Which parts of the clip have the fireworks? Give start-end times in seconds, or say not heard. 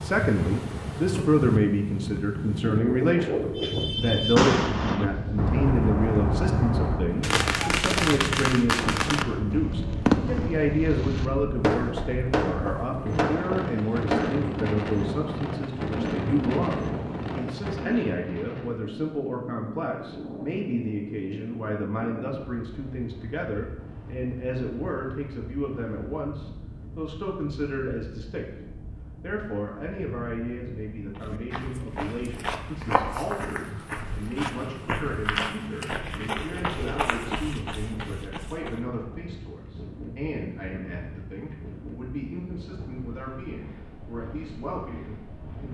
3.5-14.3.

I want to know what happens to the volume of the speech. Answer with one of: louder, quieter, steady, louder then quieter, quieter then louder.
quieter.